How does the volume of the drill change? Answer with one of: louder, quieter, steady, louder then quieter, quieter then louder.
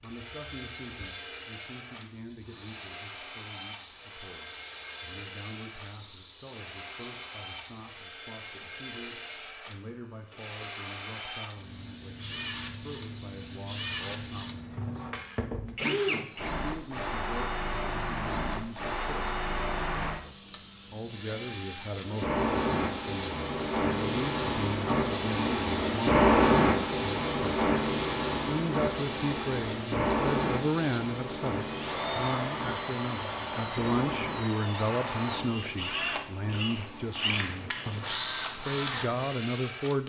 louder.